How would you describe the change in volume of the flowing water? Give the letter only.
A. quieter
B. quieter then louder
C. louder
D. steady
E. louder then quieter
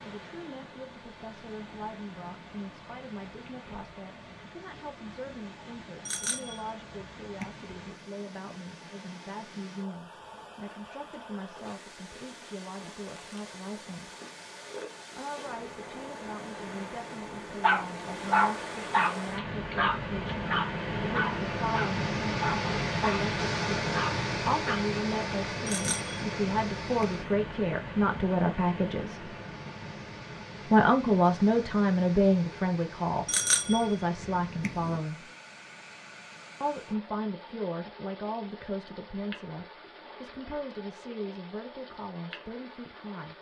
E.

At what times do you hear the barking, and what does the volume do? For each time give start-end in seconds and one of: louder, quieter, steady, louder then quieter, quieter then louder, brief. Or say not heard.
17.6-24.8 quieter.